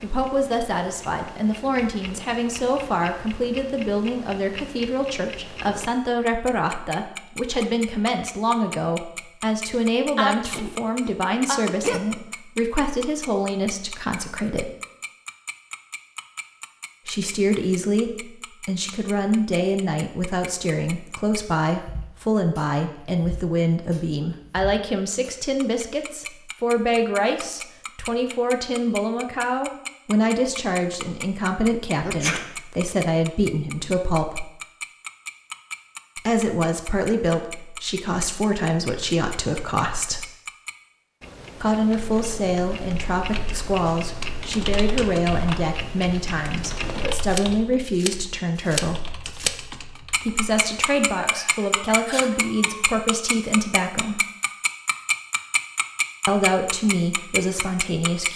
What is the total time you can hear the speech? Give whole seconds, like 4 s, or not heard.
50 s.